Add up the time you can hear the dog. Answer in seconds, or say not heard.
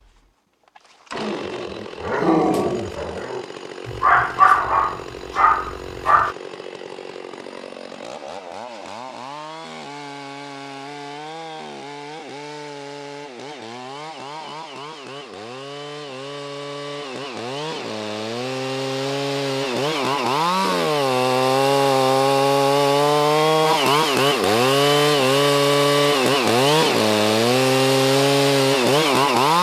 5 s.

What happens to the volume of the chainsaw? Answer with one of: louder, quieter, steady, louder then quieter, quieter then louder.
louder.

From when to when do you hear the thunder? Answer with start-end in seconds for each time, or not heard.
not heard.